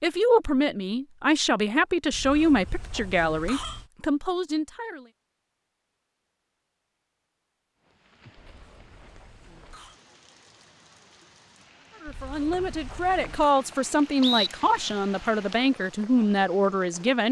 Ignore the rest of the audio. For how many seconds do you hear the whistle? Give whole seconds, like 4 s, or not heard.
2 s.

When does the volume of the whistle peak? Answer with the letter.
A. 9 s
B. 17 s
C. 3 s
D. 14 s
D.